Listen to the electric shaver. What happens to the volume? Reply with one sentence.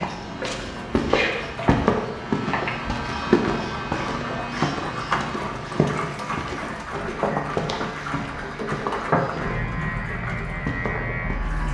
The loudness of the electric shaver goes down, then up.